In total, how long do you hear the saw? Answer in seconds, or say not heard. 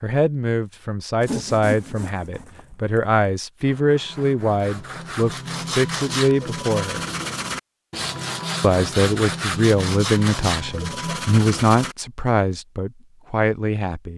11 s.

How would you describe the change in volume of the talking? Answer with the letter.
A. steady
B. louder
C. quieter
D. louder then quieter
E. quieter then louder
A.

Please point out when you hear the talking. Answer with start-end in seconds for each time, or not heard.
0.0-7.0, 8.6-14.1.